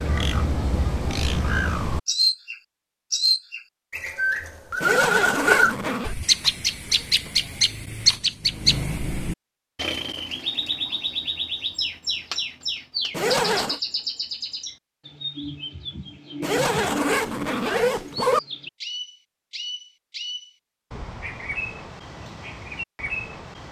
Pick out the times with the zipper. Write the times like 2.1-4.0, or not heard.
4.8-6.2, 13.1-13.8, 16.4-18.4.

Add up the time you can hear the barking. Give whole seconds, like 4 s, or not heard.
not heard.